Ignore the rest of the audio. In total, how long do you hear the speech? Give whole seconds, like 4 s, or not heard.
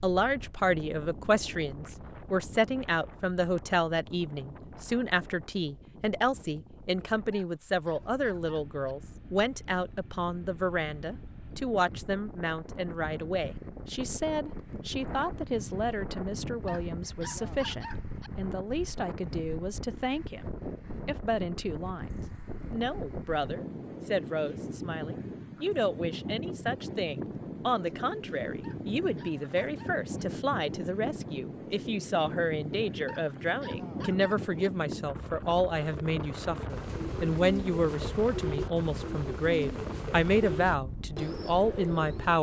42 s.